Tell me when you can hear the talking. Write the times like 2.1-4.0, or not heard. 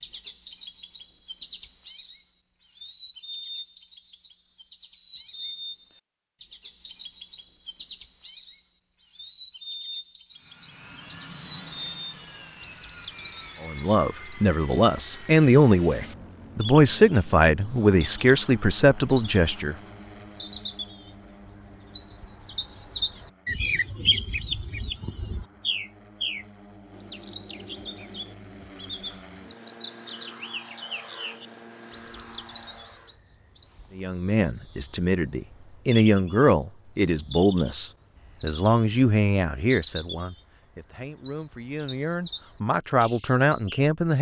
13.6-19.8, 34.0-44.1.